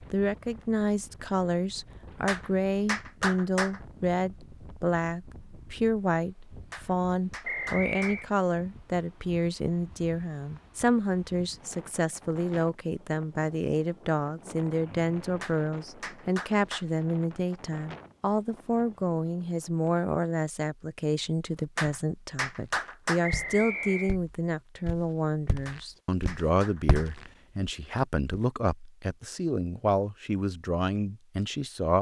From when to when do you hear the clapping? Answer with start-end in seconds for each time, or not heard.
2.2-3.8, 6.7-8.2, 15.4-16.9, 21.8-23.2, 25.6-27.2.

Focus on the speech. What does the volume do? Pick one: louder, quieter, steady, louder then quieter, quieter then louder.
steady.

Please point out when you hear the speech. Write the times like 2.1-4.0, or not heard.
0.0-31.9.